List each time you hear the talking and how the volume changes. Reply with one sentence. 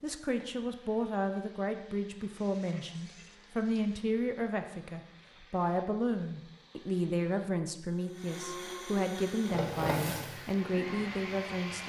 You can hear the talking from 0.0 to 11.8 s, at a steady volume.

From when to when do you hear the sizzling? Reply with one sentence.
The sizzling can be heard from 9.2 to 11.8 s.